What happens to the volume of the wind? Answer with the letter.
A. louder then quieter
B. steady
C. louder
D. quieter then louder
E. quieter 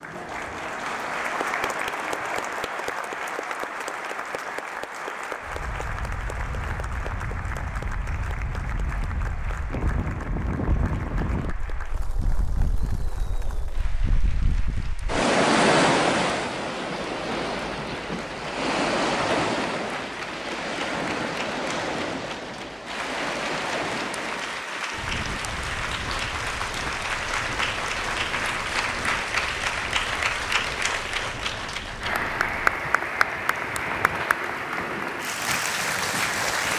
A.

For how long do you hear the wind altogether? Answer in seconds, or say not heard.
31 s.